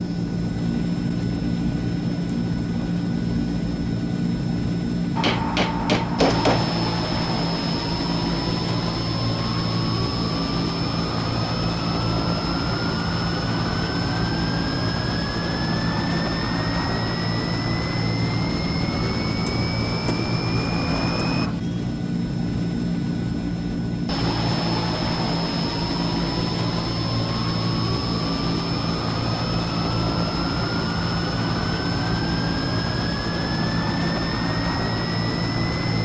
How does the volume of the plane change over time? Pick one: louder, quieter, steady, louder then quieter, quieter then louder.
steady.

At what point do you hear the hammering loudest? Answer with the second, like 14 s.
6 s.